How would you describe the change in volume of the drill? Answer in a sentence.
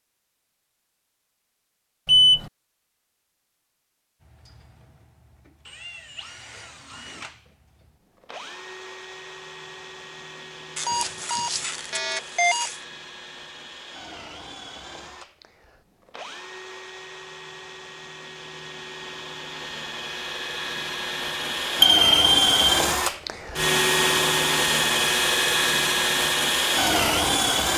The loudness of the drill goes up.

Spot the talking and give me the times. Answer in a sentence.
The talking can't be heard in this clip.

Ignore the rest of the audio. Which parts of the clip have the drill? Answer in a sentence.
You can hear the drill from 4.2 to 27.7 s.